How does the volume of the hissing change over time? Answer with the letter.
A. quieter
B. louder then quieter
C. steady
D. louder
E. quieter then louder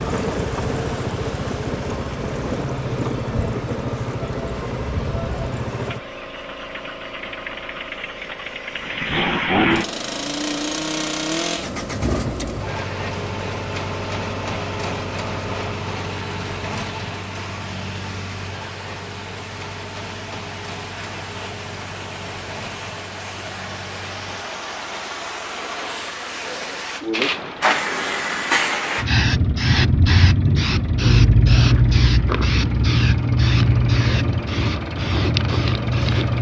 D.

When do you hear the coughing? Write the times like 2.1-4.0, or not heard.
not heard.